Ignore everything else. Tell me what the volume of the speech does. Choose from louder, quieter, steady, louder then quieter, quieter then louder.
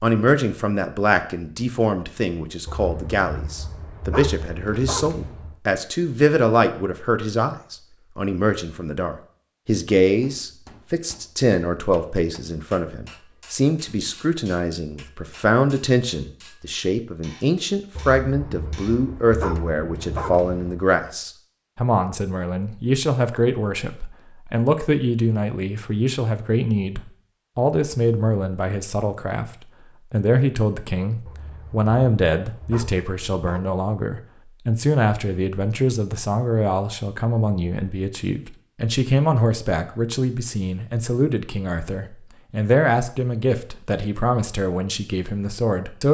steady.